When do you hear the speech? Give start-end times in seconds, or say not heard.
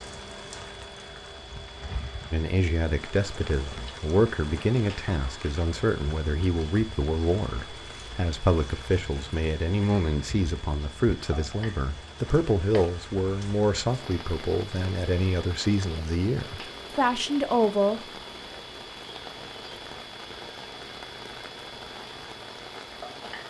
2.3-18.0.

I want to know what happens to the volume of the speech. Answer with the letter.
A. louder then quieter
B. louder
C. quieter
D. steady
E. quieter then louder
D.